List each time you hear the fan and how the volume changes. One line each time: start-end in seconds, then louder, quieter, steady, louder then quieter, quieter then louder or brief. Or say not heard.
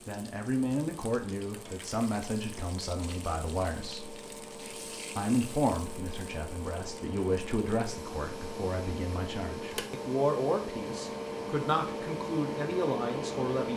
0.0-13.7 louder.